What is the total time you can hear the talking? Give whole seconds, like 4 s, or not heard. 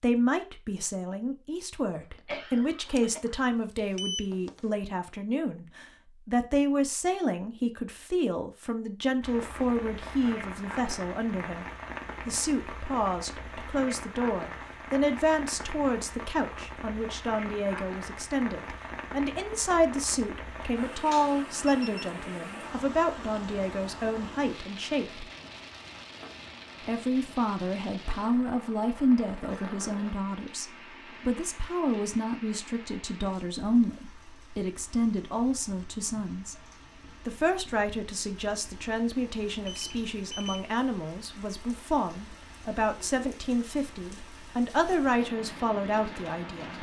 44 s.